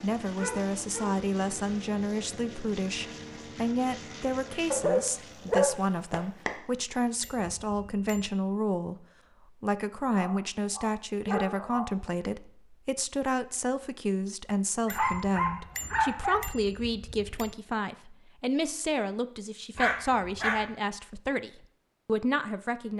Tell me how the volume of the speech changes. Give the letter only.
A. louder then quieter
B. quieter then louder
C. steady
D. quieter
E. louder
C.